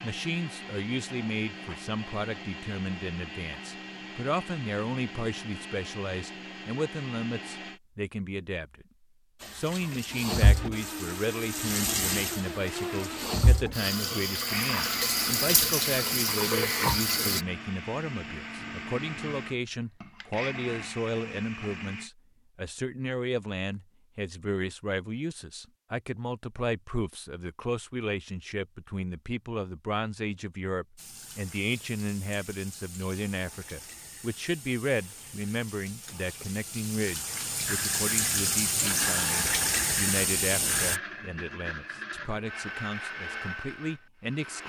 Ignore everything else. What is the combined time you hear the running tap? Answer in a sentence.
You can hear the running tap for 18 seconds altogether.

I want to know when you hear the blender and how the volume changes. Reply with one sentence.
The blender can be heard from 0.0 to 7.8 s, at a steady volume; from 10.5 to 22.1 s, at a steady volume; and from 37.6 to 44.6 s, at a steady volume.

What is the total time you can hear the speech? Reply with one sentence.
You can hear the speech for 44 seconds altogether.